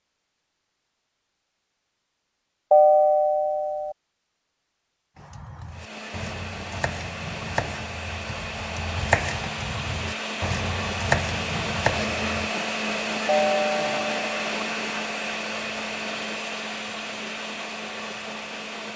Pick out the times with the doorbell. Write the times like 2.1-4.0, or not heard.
2.7-4.0, 13.2-14.4.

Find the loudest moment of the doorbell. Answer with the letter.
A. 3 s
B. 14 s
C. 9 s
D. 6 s
A.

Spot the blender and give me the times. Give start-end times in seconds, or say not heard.
5.7-18.9.